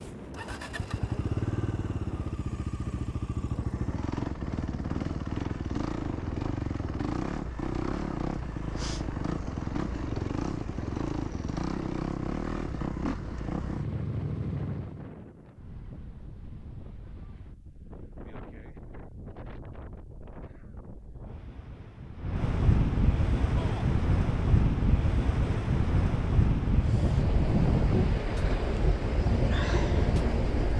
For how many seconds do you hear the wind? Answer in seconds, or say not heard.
31 s.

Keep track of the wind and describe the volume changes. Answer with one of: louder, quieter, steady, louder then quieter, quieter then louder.
louder.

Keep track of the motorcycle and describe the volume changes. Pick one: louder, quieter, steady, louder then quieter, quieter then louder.
steady.